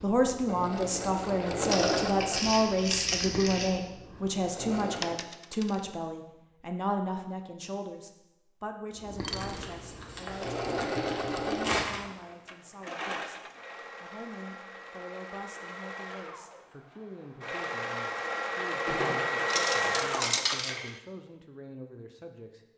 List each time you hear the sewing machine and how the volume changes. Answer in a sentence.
You can hear the sewing machine from 0.0 to 5.2 s, getting louder then quieter; and from 9.0 to 20.5 s, getting quieter then louder.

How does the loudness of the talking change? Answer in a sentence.
The loudness of the talking goes down.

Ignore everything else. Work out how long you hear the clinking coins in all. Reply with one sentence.
You can hear the clinking coins for 3 seconds altogether.